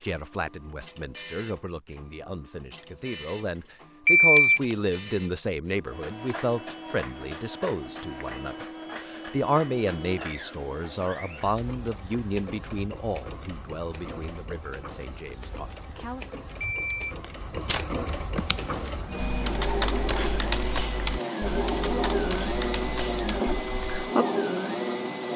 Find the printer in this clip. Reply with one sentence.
You can hear the printer from 0.0 to 25.3 s.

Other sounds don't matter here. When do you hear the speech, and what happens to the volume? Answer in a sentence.
You can hear the speech from 0.0 to 16.2 s, getting louder then quieter.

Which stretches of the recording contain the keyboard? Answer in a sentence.
The keyboard can be heard from 18.4 to 23.9 s.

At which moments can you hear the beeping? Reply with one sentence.
You can hear the beeping from 4.0 to 4.8 s and from 16.6 to 17.8 s.